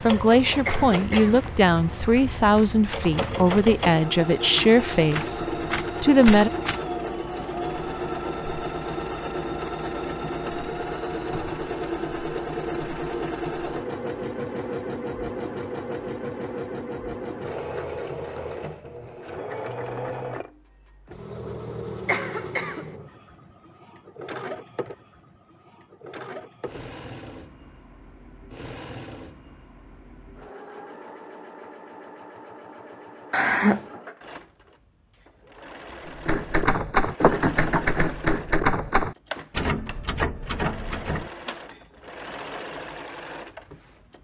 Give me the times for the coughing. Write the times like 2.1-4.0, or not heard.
0.7-1.4, 22.1-22.9, 33.3-33.9.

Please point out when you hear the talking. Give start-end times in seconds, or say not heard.
0.0-6.5.